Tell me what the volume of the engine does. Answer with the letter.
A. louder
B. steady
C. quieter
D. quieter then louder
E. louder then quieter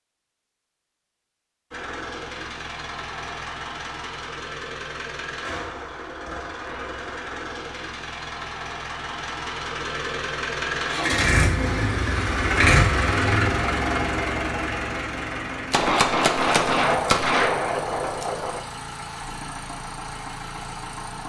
E.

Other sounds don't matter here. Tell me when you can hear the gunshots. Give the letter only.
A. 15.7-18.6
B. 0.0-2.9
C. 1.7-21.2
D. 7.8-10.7
A.